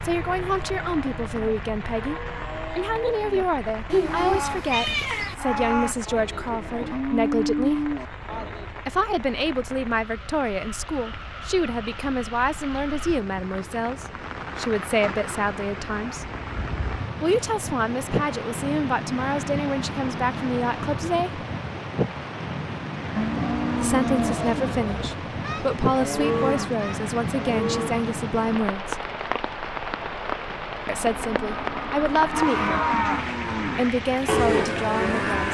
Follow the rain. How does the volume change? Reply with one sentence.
The loudness of the rain goes up.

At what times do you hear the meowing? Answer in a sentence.
You can hear the meowing from 3.9 to 5.3 s.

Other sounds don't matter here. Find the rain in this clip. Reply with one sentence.
The rain can be heard from 0.0 to 35.5 s.